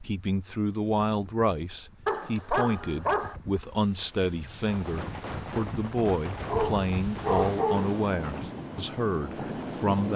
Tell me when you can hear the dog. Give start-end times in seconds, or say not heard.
2.0-3.4, 6.5-8.0.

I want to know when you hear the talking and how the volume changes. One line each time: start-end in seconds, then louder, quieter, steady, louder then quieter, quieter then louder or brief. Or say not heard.
0.0-10.1 steady.